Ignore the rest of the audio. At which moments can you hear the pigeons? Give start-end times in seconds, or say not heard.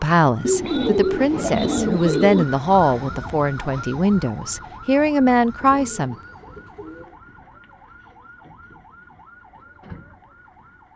0.4-2.5, 5.6-7.2.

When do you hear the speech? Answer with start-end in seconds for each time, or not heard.
0.0-6.2.